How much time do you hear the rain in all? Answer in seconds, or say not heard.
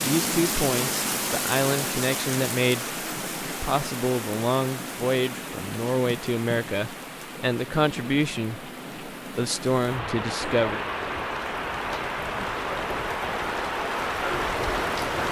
15 s.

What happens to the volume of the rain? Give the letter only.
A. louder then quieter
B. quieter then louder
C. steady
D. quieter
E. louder
B.